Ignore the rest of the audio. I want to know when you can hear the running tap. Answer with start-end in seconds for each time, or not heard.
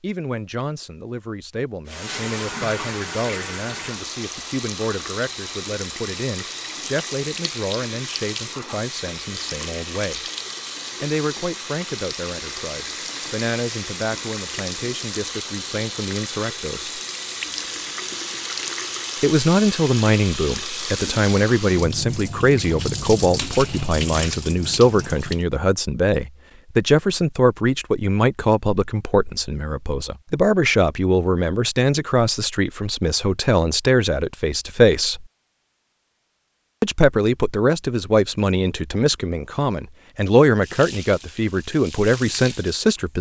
1.9-25.4, 40.5-43.1.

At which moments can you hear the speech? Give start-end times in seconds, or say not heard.
0.0-10.2, 11.0-17.0, 19.2-35.2, 36.8-43.1.